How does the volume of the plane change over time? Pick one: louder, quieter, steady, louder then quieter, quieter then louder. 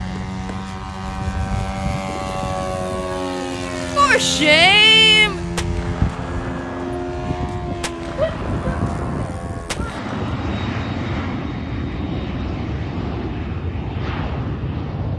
steady.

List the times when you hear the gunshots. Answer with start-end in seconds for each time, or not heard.
5.5-10.3.